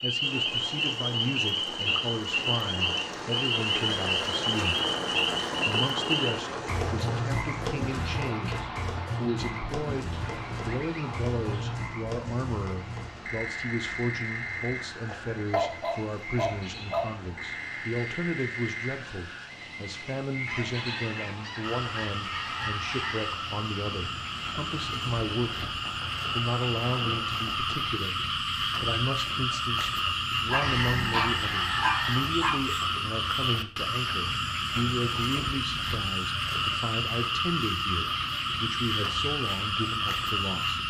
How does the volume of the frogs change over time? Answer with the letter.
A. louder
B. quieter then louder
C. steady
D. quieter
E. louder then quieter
B.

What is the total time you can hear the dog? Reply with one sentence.
You can hear the dog for 4 seconds altogether.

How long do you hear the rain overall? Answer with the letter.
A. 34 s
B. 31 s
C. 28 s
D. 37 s
C.